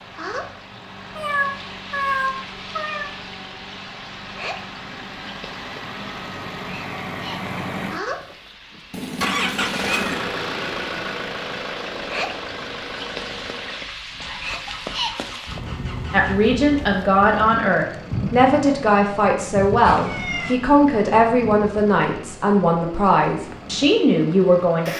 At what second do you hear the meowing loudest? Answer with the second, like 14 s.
2 s.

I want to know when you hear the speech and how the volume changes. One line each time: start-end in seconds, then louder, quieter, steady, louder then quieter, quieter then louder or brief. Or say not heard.
16.1-24.9 steady.